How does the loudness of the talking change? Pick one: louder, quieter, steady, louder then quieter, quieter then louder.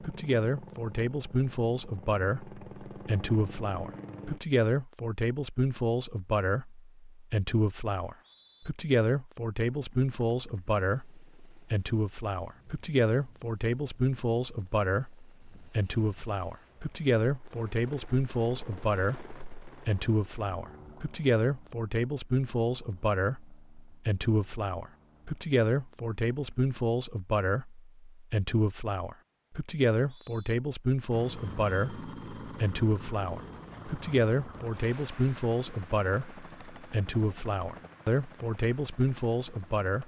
steady.